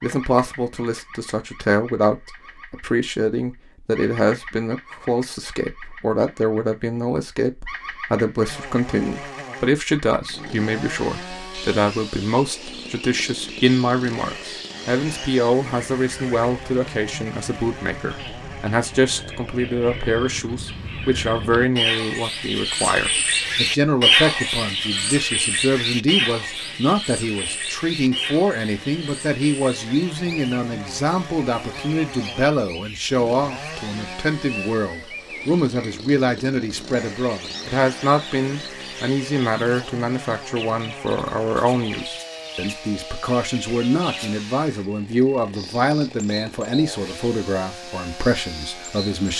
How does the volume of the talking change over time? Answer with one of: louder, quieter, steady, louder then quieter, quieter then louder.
steady.